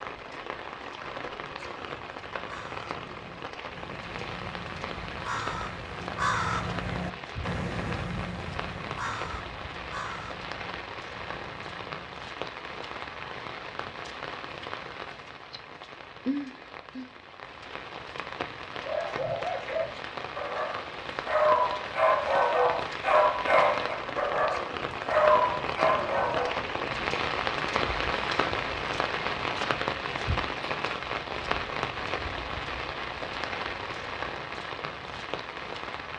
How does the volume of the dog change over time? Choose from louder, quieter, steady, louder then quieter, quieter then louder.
louder.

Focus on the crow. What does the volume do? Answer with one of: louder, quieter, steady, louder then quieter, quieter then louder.
louder then quieter.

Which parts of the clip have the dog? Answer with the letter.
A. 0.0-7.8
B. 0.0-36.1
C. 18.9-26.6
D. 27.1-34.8
C.